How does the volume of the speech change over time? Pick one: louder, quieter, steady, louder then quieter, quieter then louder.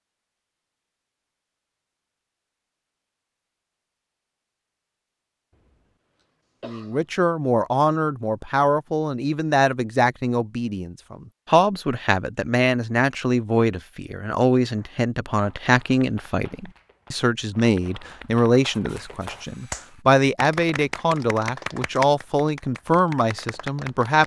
steady.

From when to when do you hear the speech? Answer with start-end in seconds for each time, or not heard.
6.7-24.2.